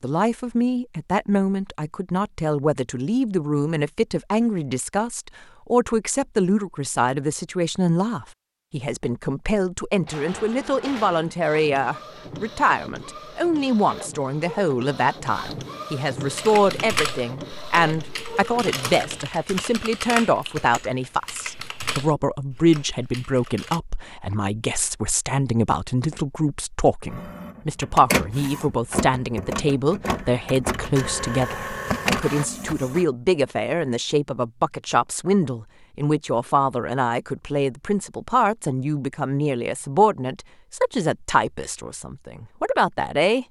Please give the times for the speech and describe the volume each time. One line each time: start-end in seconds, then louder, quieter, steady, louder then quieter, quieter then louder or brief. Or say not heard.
0.0-43.4 steady.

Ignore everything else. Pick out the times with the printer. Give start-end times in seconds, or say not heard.
9.9-19.3, 27.1-33.0.